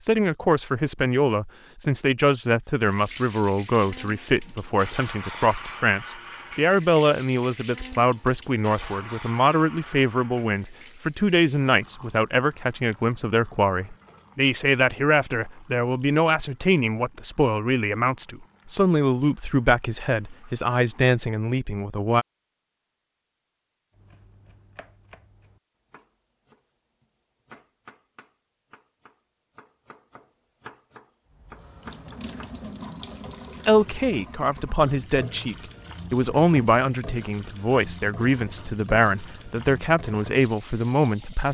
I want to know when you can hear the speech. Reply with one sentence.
The speech can be heard from 0.0 to 22.2 s and from 33.6 to 41.4 s.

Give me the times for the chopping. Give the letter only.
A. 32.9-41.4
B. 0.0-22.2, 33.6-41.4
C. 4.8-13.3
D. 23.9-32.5
D.